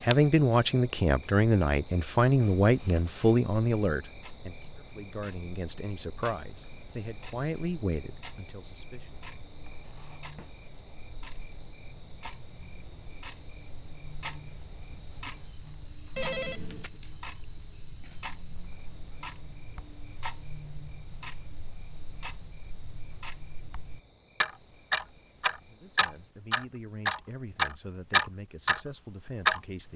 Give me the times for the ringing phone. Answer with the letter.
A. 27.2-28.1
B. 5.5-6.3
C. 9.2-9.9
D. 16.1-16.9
D.